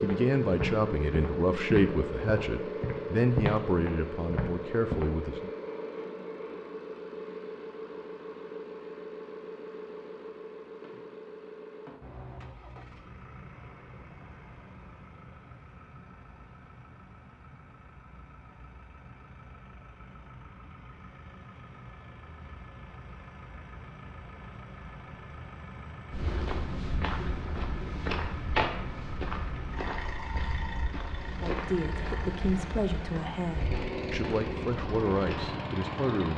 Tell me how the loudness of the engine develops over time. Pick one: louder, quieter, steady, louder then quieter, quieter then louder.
quieter then louder.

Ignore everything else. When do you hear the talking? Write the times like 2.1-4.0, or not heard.
0.0-5.5, 31.4-36.3.